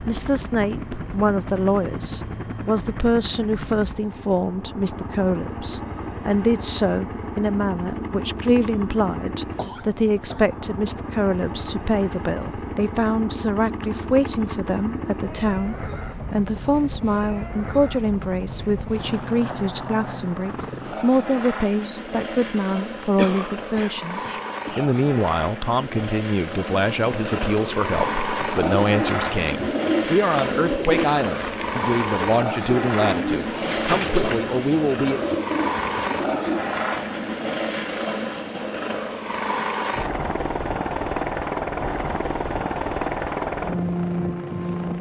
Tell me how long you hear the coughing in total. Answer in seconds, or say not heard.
3 s.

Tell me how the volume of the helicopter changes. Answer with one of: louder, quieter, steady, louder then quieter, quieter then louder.
louder.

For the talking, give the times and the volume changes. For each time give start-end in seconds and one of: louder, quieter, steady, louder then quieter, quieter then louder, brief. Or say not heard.
0.0-35.2 steady.